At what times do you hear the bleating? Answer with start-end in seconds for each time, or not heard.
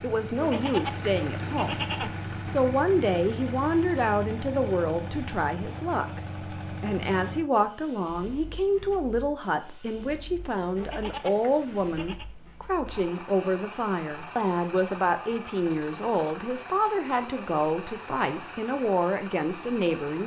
0.3-2.7, 10.8-12.3.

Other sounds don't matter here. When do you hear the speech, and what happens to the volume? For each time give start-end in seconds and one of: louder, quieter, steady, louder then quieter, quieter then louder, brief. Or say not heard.
0.0-20.2 steady.